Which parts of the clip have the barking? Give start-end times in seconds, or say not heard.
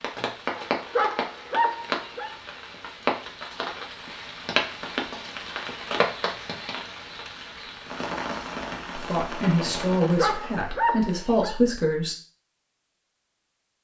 0.6-2.4, 10.1-11.6.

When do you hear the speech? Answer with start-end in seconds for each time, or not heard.
8.9-12.2.